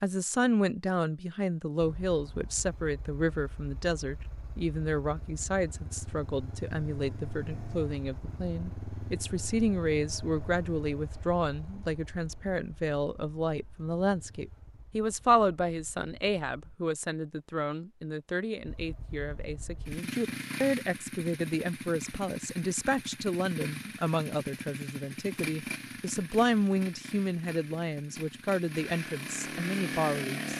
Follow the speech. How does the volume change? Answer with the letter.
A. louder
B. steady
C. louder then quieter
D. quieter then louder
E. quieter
B.